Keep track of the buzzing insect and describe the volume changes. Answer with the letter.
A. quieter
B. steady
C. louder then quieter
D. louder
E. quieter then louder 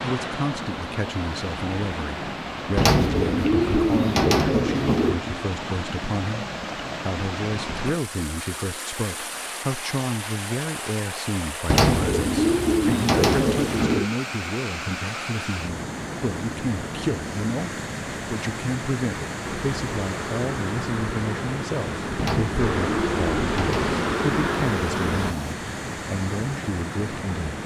D.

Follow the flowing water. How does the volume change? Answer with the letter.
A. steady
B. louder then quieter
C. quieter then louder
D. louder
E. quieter
A.